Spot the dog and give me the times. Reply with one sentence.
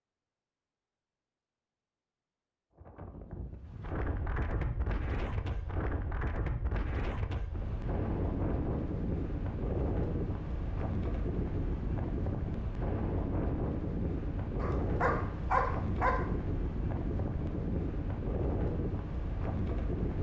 The dog can be heard from 14.6 to 16.3 s.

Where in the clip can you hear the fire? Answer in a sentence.
The fire can't be heard in this clip.